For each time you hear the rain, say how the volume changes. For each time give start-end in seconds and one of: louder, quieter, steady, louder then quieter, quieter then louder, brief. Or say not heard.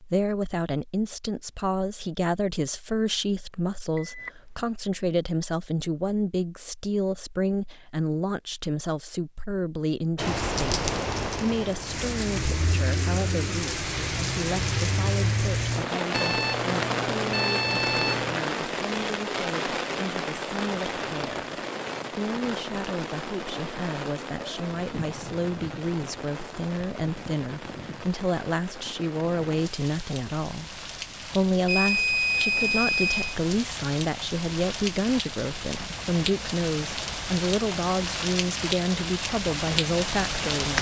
10.2-40.7 quieter then louder.